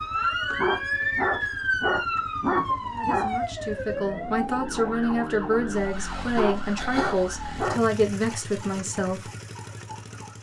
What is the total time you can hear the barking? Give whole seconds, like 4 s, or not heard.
4 s.